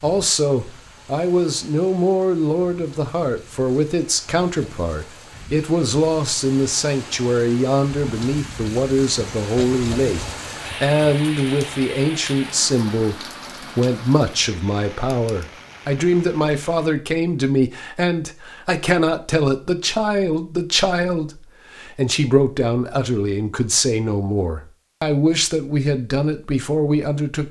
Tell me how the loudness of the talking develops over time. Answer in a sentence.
The loudness of the talking stays about the same.